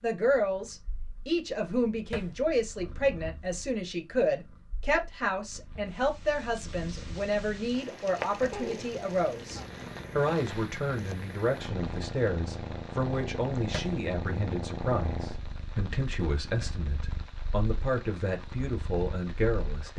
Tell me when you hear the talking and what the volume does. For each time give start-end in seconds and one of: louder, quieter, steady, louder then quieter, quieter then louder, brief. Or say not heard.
0.0-19.9 steady.